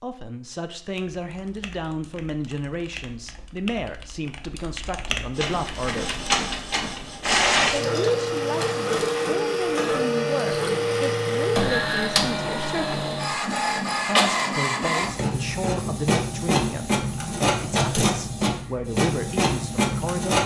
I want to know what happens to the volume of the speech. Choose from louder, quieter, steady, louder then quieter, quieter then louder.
steady.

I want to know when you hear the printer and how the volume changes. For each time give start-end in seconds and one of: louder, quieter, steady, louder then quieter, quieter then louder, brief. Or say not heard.
5.3-20.4 steady.